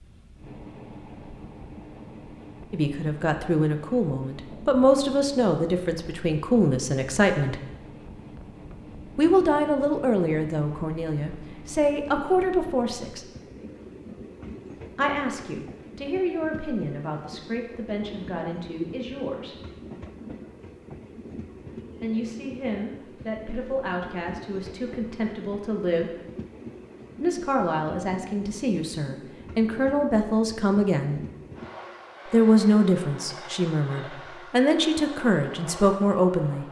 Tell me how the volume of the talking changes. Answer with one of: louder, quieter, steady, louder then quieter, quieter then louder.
quieter then louder.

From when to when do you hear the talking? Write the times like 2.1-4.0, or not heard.
2.7-7.6, 9.2-13.2, 14.9-19.6, 22.0-26.1, 27.2-31.2, 32.2-36.6.